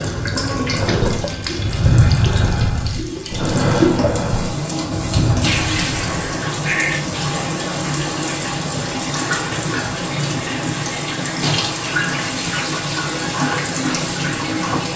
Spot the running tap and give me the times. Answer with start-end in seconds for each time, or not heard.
0.0-14.9.